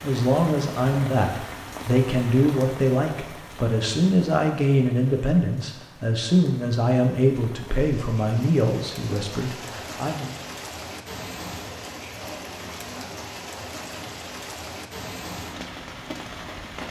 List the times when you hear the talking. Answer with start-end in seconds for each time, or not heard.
0.0-10.3.